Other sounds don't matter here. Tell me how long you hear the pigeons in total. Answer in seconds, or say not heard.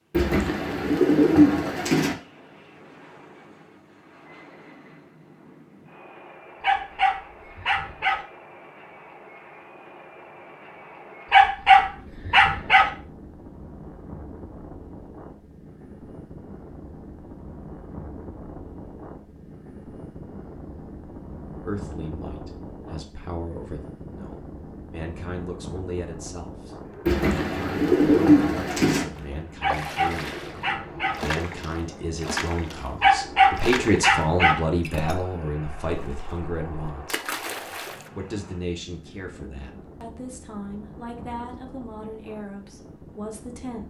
4 s.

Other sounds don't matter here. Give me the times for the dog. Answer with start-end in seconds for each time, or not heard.
6.6-8.2, 11.3-12.9, 29.6-31.2, 33.0-34.6.